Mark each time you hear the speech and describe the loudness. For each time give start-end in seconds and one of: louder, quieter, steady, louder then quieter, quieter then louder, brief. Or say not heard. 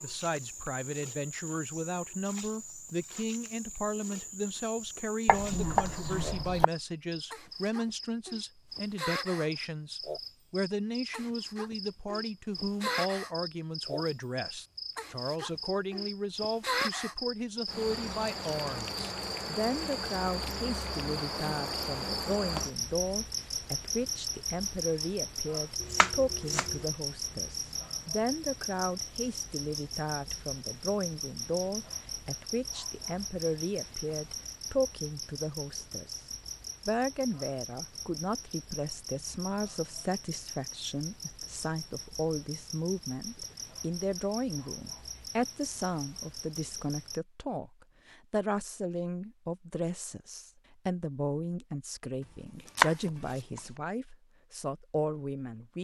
0.0-55.8 steady.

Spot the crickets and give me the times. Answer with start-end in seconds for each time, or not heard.
0.0-47.2.